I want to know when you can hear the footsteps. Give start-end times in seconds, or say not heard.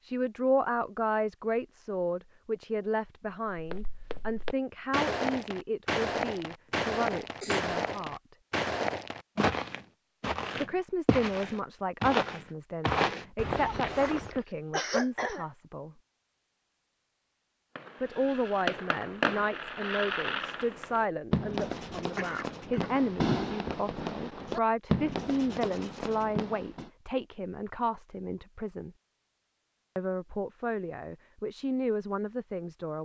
3.5-14.4.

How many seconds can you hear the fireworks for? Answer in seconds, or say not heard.
9 s.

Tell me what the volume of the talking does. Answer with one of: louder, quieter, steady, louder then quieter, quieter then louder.
steady.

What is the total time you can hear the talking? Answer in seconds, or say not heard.
28 s.